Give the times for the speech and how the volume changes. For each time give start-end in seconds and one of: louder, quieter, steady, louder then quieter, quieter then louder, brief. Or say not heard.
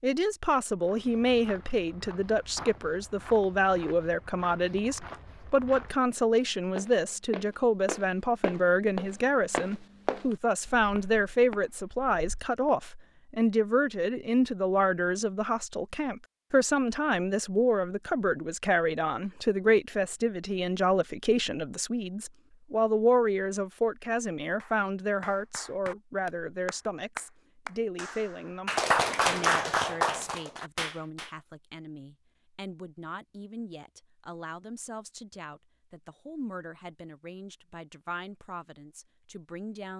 0.0-39.9 quieter.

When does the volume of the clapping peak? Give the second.
29 s.